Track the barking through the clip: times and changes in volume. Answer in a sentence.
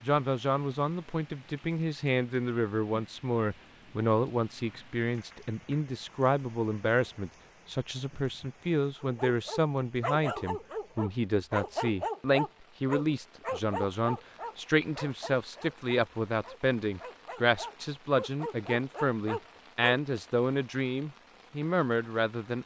You can hear the barking from 9.0 to 19.9 s, getting quieter then louder.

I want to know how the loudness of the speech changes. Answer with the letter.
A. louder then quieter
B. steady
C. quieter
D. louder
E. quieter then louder
B.